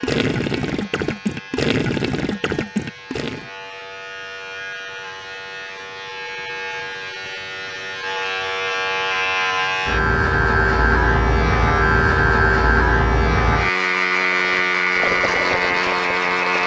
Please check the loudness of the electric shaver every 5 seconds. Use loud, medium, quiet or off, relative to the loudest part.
quiet, medium, loud, loud.